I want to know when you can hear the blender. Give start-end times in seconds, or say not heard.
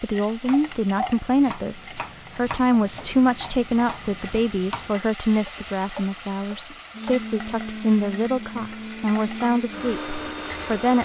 6.9-11.0.